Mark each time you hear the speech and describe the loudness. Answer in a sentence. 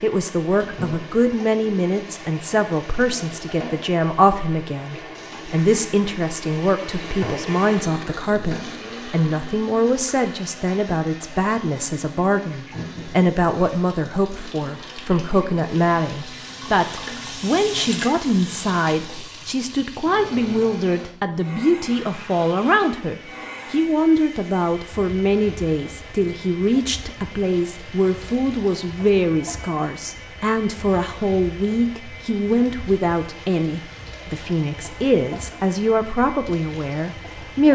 You can hear the speech from 0.0 to 37.7 s, at a steady volume.